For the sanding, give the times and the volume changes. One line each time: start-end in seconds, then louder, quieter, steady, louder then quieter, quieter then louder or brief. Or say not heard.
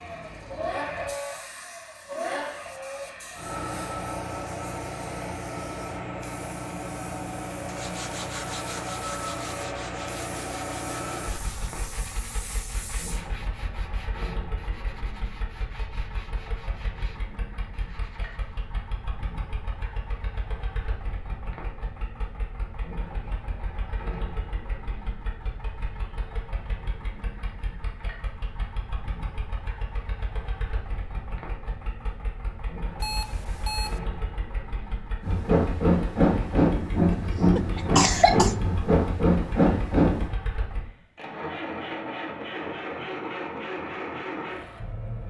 7.5-18.6 quieter.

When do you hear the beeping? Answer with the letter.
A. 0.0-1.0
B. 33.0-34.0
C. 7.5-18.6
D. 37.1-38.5
B.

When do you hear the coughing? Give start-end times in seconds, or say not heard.
37.1-38.5.